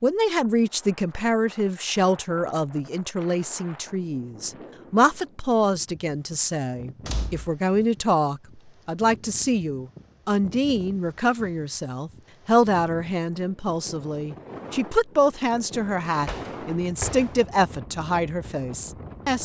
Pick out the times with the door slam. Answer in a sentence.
You can hear the door slam from 7.0 to 7.5 s and from 16.2 to 17.4 s.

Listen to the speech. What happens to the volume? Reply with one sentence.
The volume of the speech stays about the same.